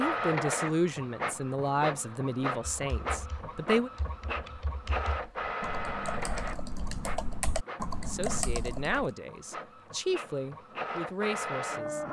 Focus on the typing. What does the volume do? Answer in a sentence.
The loudness of the typing goes up.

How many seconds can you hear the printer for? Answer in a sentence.
The printer can be heard for 12 seconds in total.